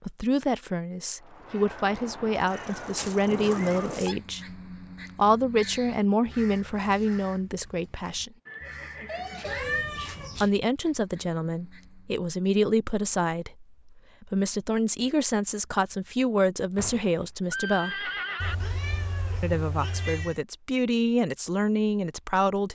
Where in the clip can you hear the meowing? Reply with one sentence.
You can hear the meowing from 2.5 to 4.2 s, from 9.4 to 10.5 s and from 18.4 to 20.4 s.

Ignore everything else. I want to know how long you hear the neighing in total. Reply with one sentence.
The neighing can be heard for 4 seconds in total.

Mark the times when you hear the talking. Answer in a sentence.
The talking can be heard from 0.0 to 8.3 s, from 10.4 to 18.1 s and from 19.4 to 22.7 s.